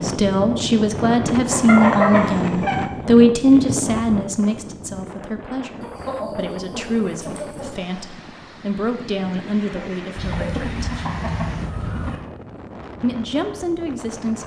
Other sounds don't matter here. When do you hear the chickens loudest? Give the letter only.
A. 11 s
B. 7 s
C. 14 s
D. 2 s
D.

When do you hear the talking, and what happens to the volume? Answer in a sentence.
The talking can be heard from 0.0 to 10.9 s, getting quieter; and briefly from 13.0 to 14.4 s.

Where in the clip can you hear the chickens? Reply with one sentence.
The chickens can be heard from 1.4 to 2.9 s, from 5.8 to 7.7 s and from 10.2 to 12.2 s.